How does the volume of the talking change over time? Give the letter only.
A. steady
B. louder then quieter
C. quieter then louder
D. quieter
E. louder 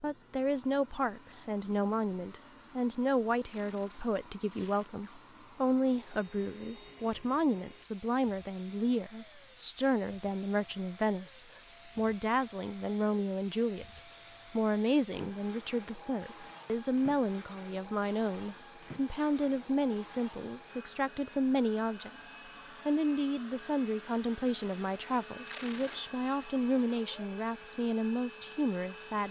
A.